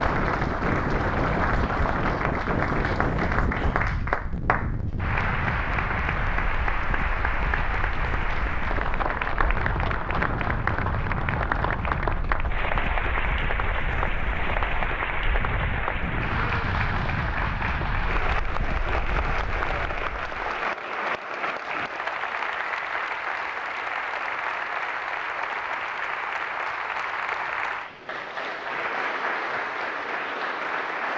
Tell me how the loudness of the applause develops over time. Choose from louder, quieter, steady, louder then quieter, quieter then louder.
steady.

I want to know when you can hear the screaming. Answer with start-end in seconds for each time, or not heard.
not heard.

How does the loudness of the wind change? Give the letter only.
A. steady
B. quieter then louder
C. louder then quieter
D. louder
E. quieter
E.